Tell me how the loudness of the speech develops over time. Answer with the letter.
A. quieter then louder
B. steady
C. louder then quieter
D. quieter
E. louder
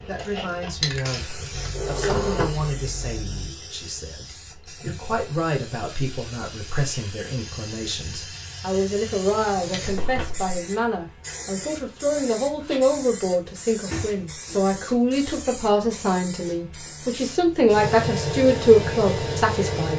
E.